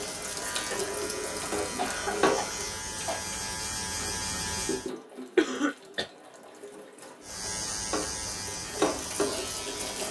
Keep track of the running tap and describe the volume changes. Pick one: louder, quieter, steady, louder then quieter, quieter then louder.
quieter then louder.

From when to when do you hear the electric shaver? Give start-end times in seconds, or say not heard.
0.0-4.9, 7.2-10.0.